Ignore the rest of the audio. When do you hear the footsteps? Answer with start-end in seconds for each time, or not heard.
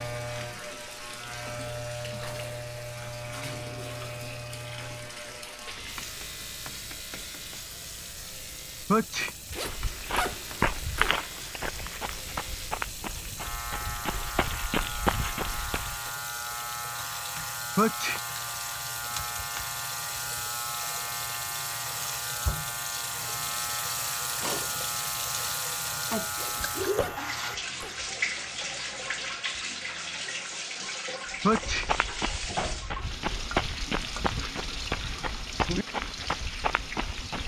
9.6-16.1, 31.4-37.4.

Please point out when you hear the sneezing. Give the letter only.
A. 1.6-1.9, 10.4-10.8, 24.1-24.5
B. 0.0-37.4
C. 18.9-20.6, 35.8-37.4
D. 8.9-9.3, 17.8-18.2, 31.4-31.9
D.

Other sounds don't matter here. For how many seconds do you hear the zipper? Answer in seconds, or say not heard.
3 s.